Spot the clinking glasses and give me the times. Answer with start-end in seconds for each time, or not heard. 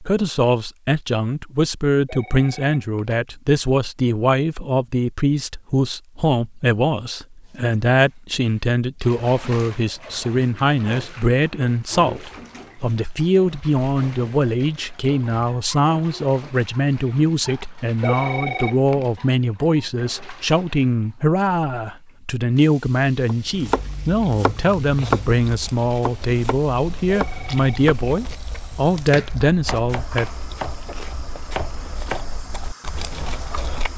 not heard.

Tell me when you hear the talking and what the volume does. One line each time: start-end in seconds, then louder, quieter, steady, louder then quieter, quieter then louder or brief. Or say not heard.
0.0-30.3 steady.